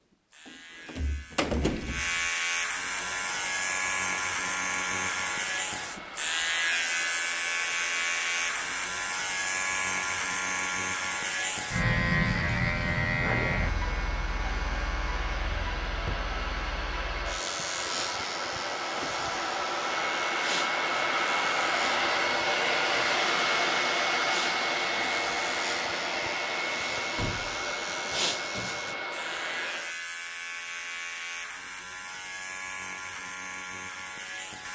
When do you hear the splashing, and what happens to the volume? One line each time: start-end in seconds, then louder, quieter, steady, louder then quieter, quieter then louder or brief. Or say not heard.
not heard.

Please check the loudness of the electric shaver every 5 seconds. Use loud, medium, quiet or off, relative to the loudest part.
loud, loud, loud, medium, medium, medium, medium.